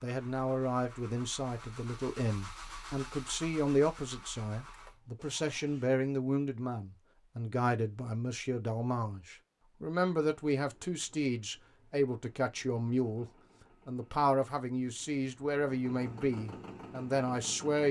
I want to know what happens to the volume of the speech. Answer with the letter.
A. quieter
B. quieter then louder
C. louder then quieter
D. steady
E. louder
D.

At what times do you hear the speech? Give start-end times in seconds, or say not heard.
0.0-13.2, 13.8-17.8.